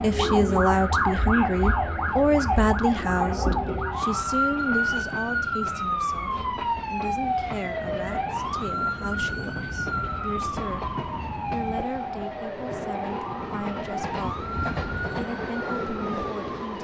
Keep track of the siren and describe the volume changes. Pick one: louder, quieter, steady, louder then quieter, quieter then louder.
quieter.